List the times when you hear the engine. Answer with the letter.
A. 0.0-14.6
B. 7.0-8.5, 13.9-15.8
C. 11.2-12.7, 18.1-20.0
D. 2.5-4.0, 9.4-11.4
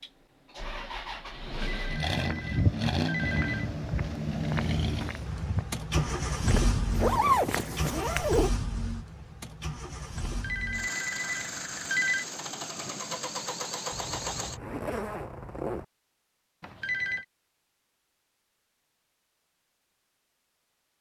A.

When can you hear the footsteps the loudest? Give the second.
3 s.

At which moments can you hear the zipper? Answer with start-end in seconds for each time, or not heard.
7.0-8.5, 13.9-15.8.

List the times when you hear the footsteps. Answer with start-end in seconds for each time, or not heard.
2.1-8.3.